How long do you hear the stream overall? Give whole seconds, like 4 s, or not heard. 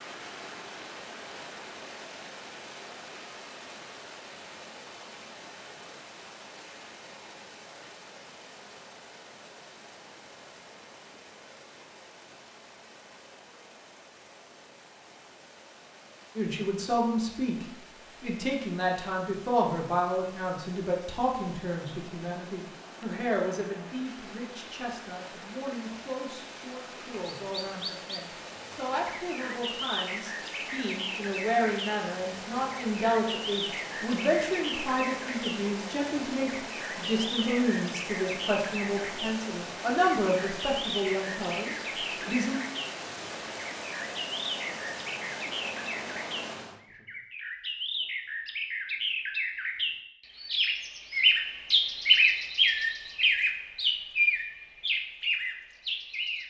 47 s.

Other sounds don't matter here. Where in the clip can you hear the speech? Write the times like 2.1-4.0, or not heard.
16.4-42.6.